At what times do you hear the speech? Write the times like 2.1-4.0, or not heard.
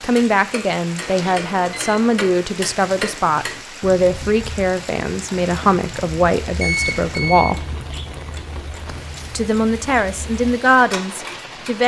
0.0-7.7, 9.3-11.8.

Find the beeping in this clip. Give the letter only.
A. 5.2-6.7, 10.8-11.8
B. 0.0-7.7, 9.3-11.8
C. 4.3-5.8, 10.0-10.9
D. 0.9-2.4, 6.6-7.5
D.